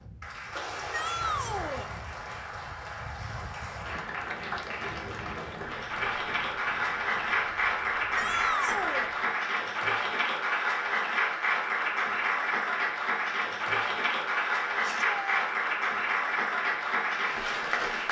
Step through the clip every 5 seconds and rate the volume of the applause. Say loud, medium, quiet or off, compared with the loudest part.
medium, loud, loud, loud.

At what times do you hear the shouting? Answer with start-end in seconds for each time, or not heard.
0.9-1.9, 8.2-9.1, 14.8-15.4.